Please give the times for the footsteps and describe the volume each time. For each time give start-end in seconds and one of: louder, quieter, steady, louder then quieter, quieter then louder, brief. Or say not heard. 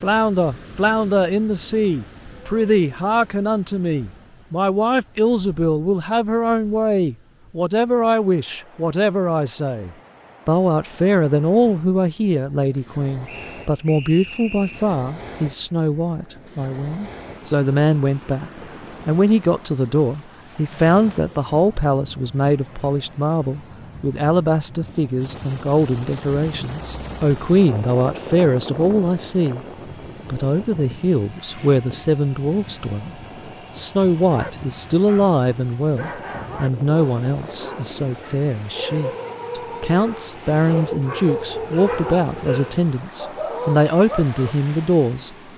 not heard.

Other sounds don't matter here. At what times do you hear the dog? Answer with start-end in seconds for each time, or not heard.
34.2-44.5.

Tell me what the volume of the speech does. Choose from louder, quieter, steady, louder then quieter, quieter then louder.
steady.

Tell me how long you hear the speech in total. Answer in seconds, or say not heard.
45 s.